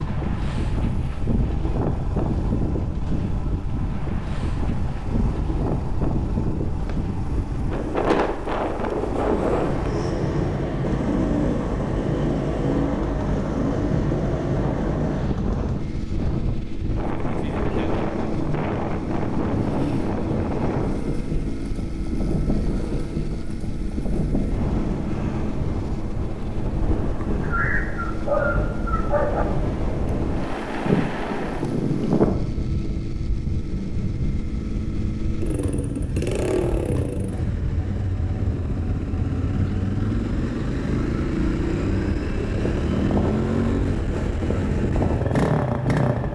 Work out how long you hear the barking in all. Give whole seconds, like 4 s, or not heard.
2 s.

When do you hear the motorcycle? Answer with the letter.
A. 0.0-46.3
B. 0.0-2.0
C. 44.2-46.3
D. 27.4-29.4
A.